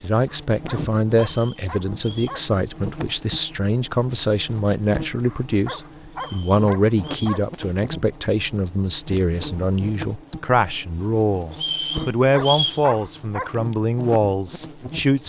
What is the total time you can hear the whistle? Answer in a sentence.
You can hear the whistle for 4 seconds altogether.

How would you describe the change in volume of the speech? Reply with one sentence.
The volume of the speech stays about the same.